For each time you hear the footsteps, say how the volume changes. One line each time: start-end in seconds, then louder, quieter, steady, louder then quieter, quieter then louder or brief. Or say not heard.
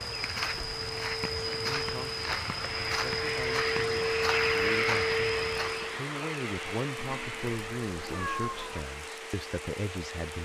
0.0-6.0 steady.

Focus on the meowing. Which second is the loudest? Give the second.
8 s.